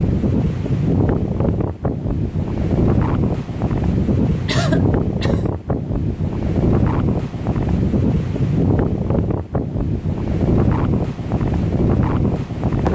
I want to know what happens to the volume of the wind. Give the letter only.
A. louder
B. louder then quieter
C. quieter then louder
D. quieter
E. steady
E.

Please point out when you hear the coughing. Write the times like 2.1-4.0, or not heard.
4.5-5.5.